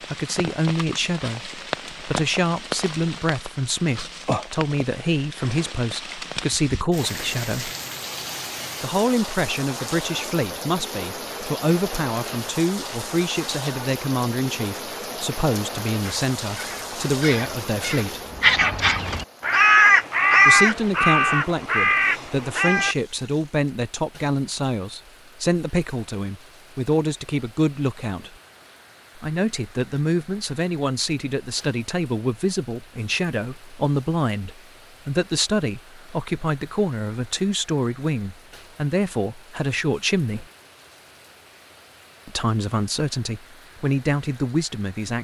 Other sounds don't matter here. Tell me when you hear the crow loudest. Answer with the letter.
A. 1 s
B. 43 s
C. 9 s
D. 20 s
D.